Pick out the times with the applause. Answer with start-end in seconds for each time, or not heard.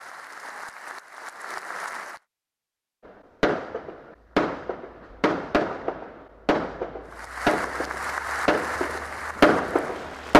0.0-2.2, 7.0-10.3.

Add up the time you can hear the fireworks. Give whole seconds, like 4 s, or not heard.
7 s.